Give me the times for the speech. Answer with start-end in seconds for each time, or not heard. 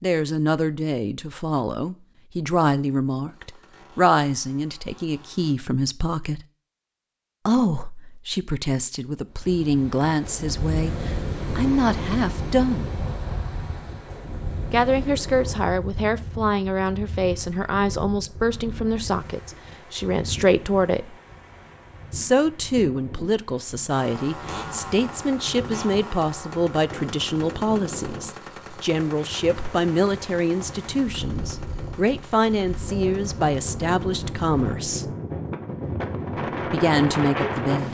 0.0-6.5, 7.5-12.9, 14.7-21.1, 22.1-35.1, 36.7-37.9.